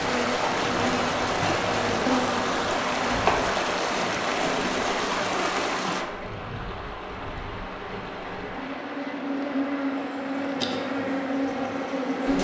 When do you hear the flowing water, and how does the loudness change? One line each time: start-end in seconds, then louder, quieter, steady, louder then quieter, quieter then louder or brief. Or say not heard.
0.0-12.3 quieter.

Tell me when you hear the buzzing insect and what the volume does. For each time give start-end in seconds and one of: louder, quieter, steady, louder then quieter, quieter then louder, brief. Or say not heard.
0.0-12.4 quieter then louder.